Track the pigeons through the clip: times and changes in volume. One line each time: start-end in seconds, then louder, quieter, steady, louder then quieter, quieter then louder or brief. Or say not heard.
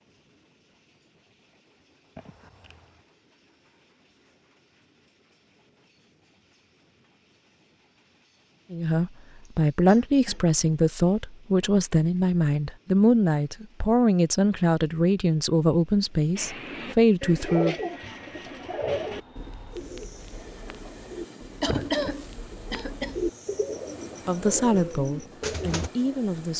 16.4-25.9 quieter then louder.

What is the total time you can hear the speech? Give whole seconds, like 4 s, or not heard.
11 s.